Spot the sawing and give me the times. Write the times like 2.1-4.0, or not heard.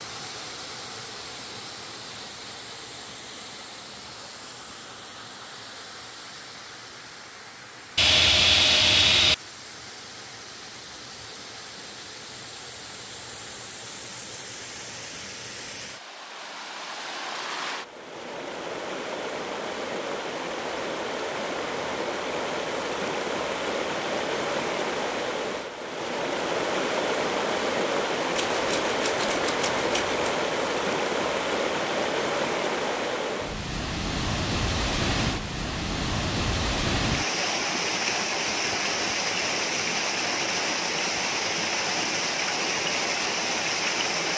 8.0-9.3, 28.4-30.4.